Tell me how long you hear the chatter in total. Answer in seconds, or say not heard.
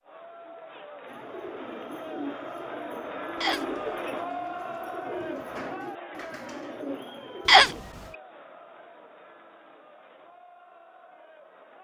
12 s.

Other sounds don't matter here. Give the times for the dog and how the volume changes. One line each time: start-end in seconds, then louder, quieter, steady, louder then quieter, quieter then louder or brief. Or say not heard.
not heard.